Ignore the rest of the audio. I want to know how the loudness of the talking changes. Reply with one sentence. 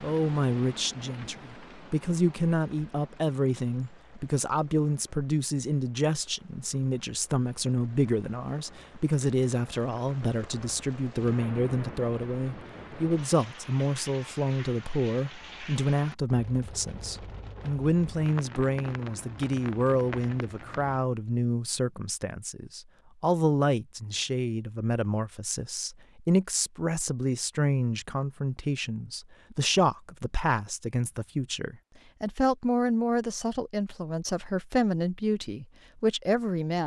The volume of the talking stays about the same.